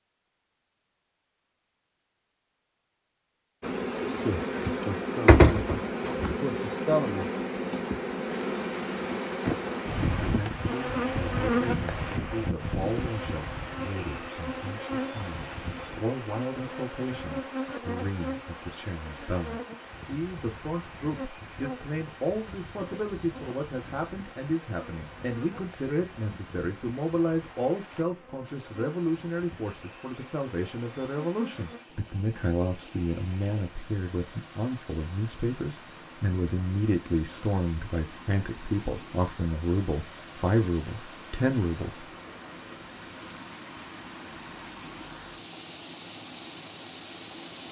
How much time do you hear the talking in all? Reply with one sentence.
The talking can be heard for 32 seconds in total.